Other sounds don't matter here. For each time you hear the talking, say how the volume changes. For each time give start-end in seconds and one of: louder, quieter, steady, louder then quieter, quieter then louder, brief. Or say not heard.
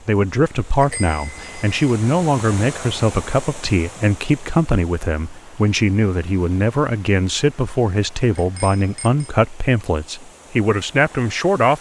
0.1-11.7 steady.